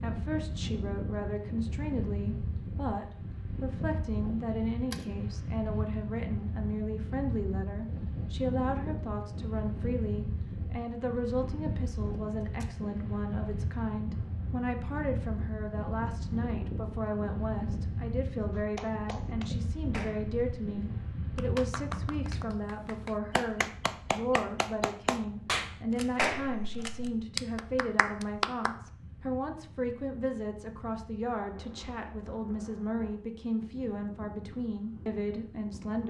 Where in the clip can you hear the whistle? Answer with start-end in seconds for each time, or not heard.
not heard.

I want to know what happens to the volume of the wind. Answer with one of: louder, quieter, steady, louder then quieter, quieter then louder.
quieter.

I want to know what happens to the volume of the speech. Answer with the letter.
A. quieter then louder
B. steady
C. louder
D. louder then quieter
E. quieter
B.